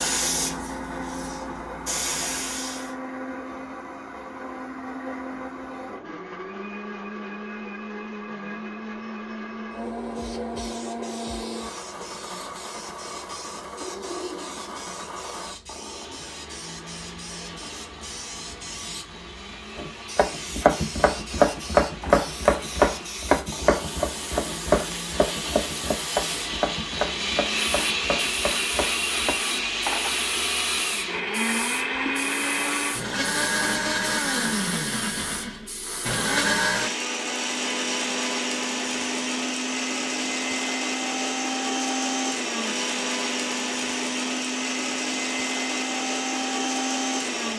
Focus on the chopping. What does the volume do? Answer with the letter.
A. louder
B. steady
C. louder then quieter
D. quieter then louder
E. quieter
E.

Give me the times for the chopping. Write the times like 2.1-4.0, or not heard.
19.8-29.4.